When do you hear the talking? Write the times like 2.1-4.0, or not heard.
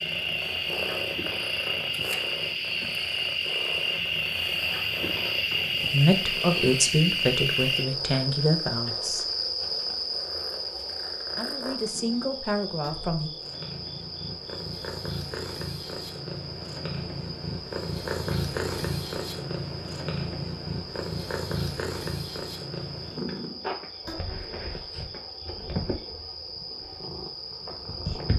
5.9-9.2, 11.3-13.3.